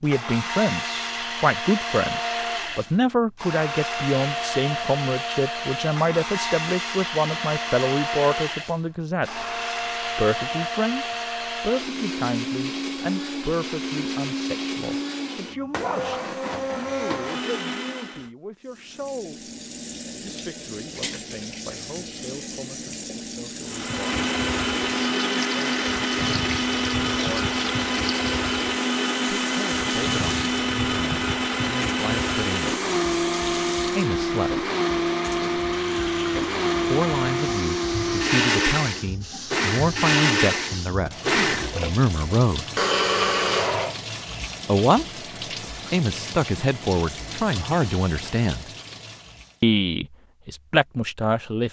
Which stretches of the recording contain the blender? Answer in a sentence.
You can hear the blender from 0.0 to 18.3 s and from 23.6 to 44.0 s.